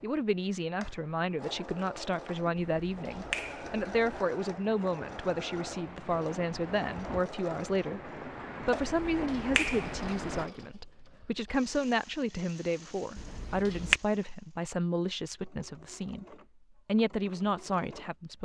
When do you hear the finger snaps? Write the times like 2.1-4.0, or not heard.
2.5-4.2, 8.8-10.4, 13.2-14.0.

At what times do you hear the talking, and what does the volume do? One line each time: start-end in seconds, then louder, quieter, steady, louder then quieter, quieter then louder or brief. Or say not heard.
0.0-18.4 steady.